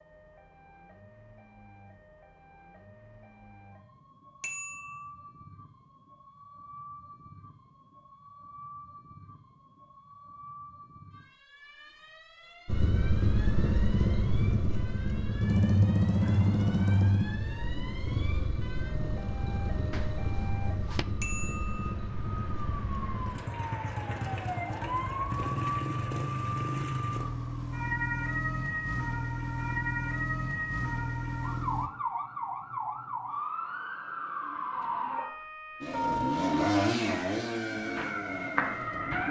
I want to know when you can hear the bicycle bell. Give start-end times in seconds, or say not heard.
4.4-5.0, 21.2-21.9.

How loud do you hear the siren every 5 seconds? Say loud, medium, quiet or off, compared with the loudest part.
quiet, quiet, quiet, quiet, medium, loud, loud, loud.